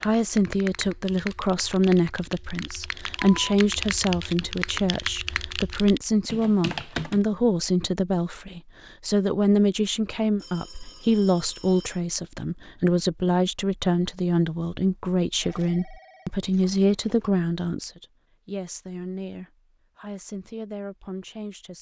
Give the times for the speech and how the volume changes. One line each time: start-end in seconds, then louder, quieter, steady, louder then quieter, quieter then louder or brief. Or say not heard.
0.0-21.7 quieter.